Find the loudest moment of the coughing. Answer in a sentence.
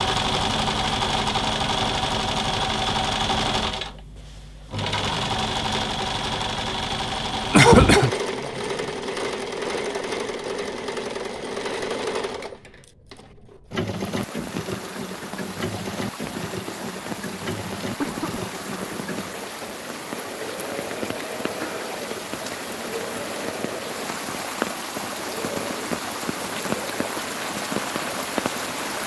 The loudest moment of the coughing is at 8 seconds.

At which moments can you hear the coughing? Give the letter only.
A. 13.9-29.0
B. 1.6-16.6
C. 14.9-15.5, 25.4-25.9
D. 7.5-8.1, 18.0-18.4
D.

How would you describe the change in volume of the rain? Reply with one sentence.
The volume of the rain goes up.